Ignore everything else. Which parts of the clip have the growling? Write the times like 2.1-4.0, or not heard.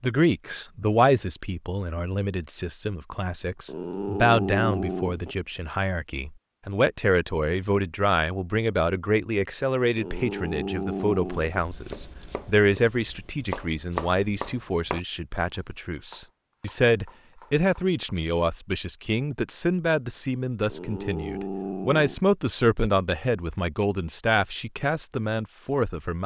3.6-5.3, 9.9-11.6, 20.7-22.2.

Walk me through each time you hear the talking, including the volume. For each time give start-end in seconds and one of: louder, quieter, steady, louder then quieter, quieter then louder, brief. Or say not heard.
0.0-26.2 steady.